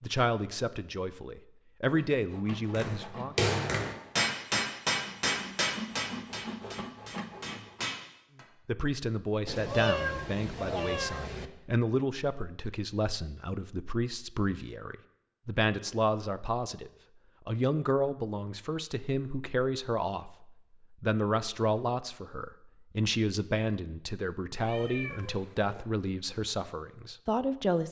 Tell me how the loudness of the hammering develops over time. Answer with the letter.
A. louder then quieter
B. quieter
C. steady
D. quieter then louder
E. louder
B.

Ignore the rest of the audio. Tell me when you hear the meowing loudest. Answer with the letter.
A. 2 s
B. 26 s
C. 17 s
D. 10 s
D.